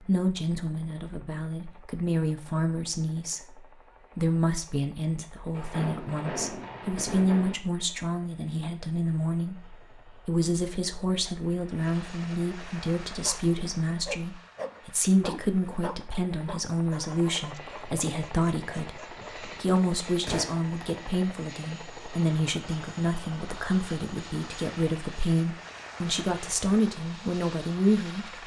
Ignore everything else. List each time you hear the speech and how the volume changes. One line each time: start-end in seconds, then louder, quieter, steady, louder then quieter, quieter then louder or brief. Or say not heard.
0.1-28.3 steady.